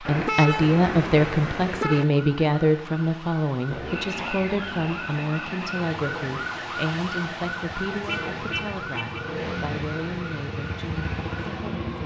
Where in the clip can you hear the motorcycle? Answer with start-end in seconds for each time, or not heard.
3.6-12.0.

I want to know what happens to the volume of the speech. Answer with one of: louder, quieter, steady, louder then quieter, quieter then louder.
quieter.